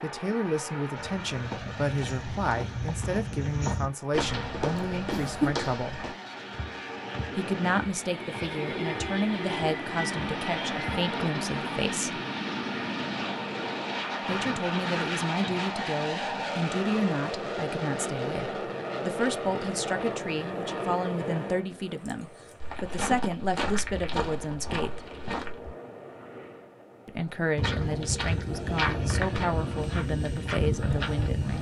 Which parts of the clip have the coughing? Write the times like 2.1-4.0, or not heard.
4.8-5.6, 14.2-15.7, 21.8-22.8.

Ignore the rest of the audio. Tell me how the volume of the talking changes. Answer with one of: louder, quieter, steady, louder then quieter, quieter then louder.
steady.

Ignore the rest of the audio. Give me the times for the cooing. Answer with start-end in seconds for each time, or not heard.
not heard.